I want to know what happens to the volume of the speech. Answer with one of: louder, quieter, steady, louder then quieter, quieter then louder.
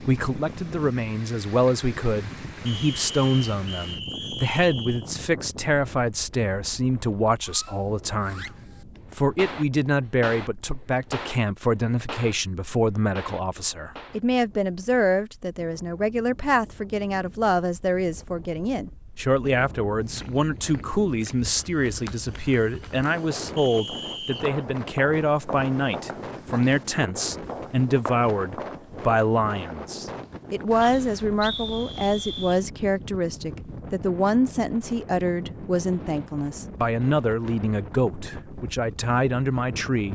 steady.